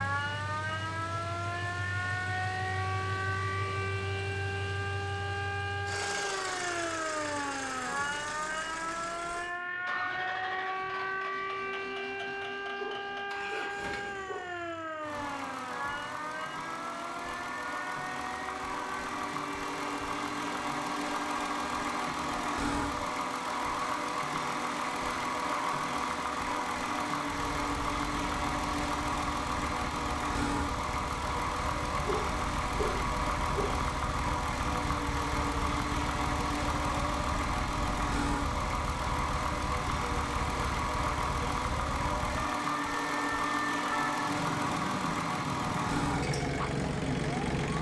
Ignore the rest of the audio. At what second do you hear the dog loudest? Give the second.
33 s.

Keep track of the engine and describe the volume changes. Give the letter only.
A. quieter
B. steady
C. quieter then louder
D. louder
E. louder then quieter
D.